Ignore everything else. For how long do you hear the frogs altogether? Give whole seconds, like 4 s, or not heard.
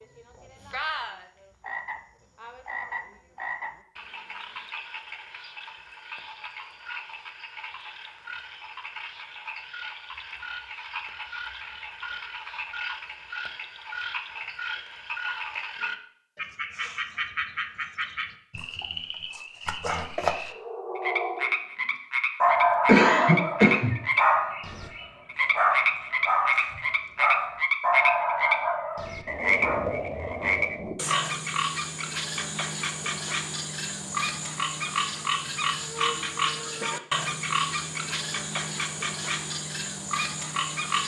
41 s.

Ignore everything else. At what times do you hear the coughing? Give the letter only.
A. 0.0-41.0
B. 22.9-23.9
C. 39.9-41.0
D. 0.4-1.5
B.